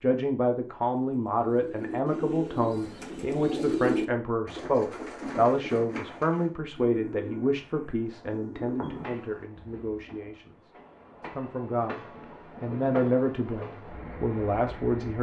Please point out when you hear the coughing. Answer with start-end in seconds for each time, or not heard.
not heard.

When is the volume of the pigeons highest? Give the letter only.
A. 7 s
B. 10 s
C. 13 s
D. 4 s
D.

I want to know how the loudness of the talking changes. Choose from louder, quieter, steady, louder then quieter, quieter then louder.
quieter then louder.